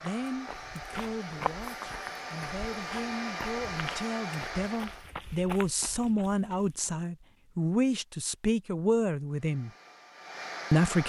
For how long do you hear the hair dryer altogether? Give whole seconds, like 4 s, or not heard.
7 s.